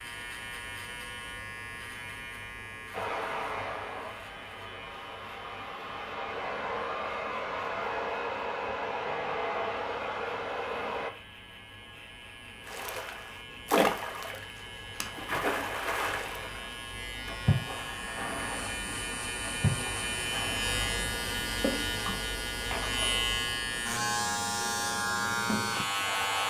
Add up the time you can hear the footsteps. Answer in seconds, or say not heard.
not heard.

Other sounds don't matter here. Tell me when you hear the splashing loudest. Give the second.
14 s.